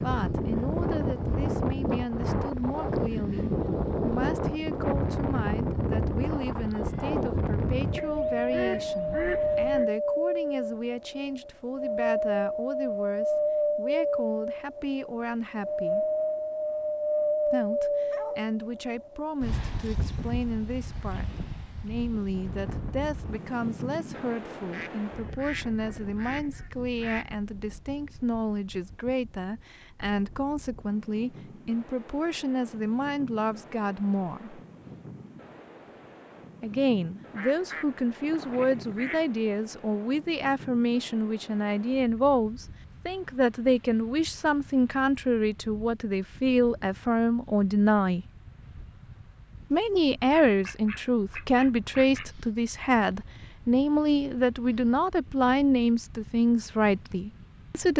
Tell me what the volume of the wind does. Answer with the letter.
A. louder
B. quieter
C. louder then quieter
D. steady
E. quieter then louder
B.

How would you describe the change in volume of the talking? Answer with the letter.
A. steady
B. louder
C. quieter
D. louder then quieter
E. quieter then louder
B.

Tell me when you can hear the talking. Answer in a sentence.
You can hear the talking from 0.0 to 16.1 s, from 17.4 to 34.6 s, from 36.6 to 48.2 s and from 49.7 to 57.9 s.